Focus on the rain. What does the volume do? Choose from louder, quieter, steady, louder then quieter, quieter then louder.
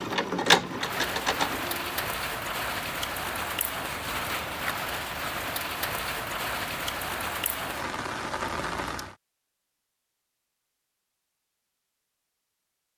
steady.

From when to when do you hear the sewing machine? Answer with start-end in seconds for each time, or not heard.
0.0-1.9.